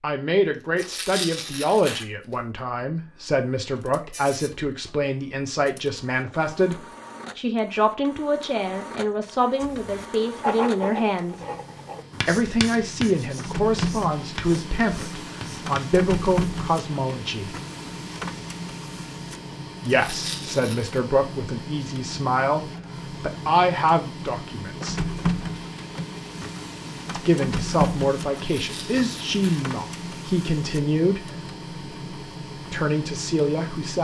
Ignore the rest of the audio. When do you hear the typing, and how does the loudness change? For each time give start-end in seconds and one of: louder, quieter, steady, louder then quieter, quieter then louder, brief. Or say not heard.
not heard.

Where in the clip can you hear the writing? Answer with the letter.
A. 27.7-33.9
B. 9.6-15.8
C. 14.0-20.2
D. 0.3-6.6
B.